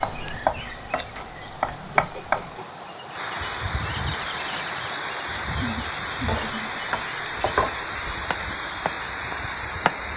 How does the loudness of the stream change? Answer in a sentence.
The loudness of the stream goes up.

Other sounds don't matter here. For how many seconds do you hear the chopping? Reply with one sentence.
The chopping can be heard for 6 seconds in total.